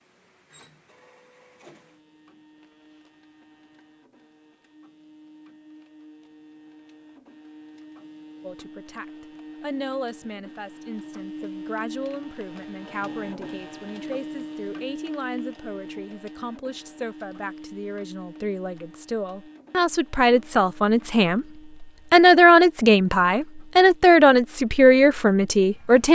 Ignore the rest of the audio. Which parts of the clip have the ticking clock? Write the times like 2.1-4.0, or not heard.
not heard.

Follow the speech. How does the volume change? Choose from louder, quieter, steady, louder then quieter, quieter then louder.
louder.